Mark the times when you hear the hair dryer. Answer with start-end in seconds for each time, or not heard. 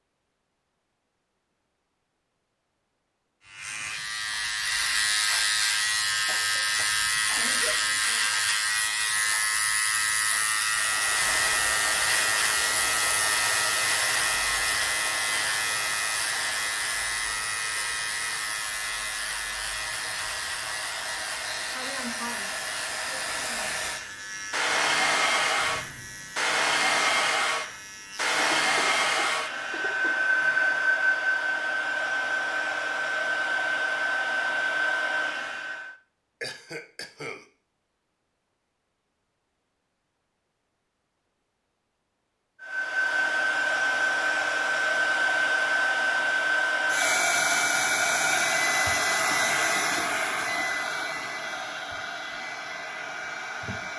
10.7-36.0, 42.6-53.9.